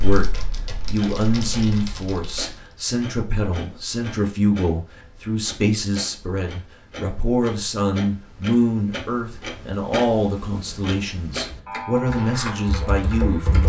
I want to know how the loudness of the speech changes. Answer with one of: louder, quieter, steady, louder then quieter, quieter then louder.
steady.